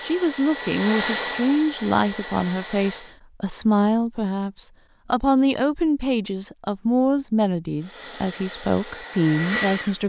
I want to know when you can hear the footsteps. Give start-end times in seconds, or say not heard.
not heard.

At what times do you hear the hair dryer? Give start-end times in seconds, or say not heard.
0.0-3.1, 7.8-10.0.